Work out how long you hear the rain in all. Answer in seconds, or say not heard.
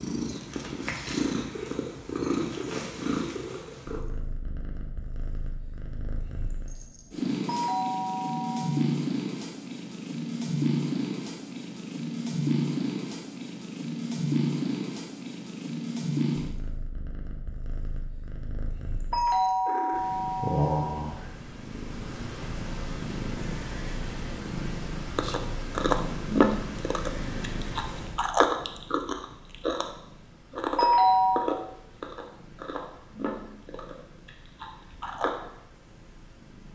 not heard.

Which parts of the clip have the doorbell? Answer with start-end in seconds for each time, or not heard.
7.5-8.8, 19.1-21.1, 30.8-31.5.